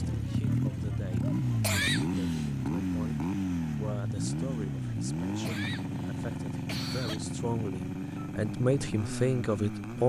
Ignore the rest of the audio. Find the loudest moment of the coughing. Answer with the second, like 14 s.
2 s.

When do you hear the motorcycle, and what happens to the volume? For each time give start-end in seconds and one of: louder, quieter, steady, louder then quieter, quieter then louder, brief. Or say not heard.
0.0-10.0 quieter.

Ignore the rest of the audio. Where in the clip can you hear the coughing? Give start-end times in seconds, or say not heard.
1.6-2.5, 5.4-7.2.